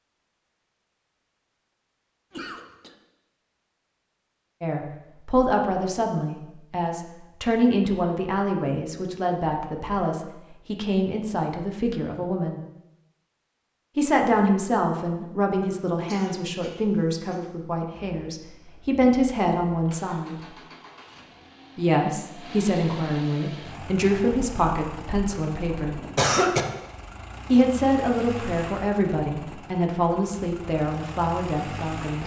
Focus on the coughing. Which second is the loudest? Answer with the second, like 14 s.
26 s.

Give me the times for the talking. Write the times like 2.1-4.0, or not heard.
4.6-12.6, 13.9-20.4, 21.8-26.1, 27.5-32.2.